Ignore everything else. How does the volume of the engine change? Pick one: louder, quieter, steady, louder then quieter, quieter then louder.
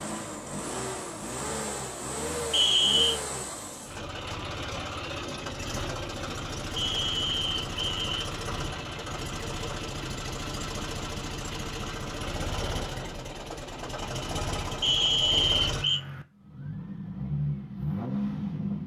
steady.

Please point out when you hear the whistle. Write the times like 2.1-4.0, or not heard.
2.5-3.2, 6.8-8.1, 14.8-16.0.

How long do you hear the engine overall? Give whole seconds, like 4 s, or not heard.
19 s.